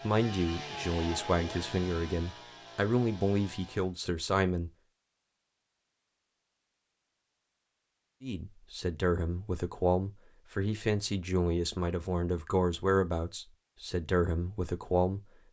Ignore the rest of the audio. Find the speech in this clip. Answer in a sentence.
You can hear the speech from 0.0 to 4.7 s and from 8.2 to 15.3 s.